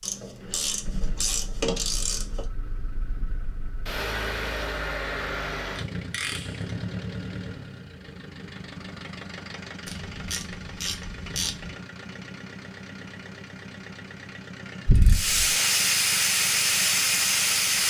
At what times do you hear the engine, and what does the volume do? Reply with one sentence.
You can hear the engine from 0.2 to 17.8 s, getting louder then quieter.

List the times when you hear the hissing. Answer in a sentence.
You can hear the hissing from 15.1 to 17.8 s.